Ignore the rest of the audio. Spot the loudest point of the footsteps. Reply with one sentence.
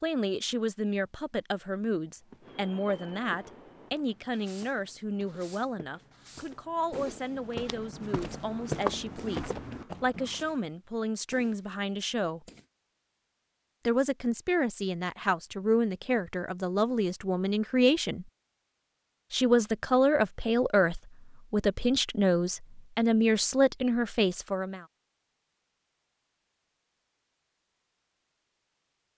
The volume of the footsteps peaks at 9 seconds.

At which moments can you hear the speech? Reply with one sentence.
The speech can be heard from 0.0 to 12.4 s, from 13.8 to 18.2 s and from 19.3 to 24.9 s.